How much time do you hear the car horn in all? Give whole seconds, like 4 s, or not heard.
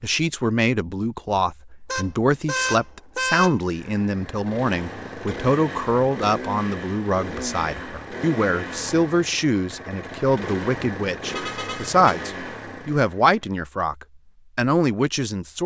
3 s.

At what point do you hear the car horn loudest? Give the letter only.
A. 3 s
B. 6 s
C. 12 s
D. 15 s
A.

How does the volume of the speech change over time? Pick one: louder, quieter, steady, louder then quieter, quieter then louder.
steady.